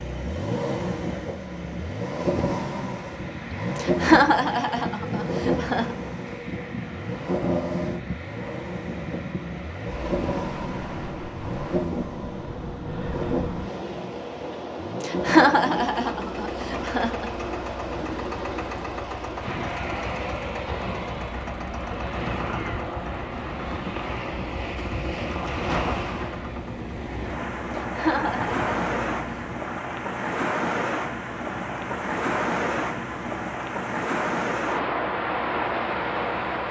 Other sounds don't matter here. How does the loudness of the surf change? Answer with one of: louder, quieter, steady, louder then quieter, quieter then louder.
louder.